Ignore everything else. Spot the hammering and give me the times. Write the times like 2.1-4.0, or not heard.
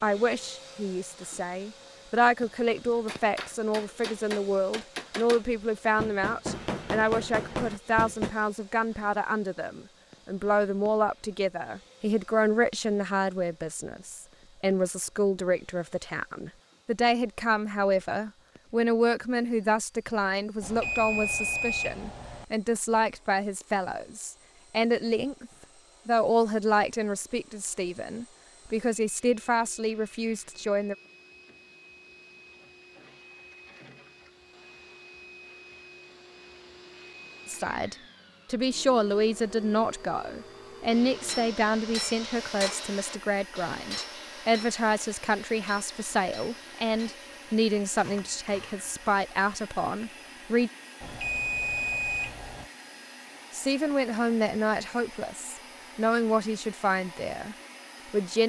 2.9-8.3, 40.9-48.9.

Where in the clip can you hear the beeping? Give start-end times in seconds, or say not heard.
20.6-22.4, 51.0-52.7.